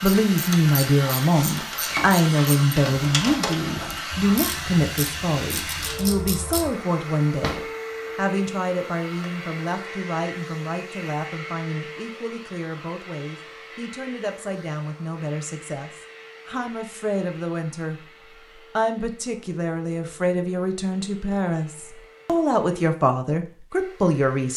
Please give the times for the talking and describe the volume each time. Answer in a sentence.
The talking can be heard from 0.0 to 24.5 s, getting quieter then louder.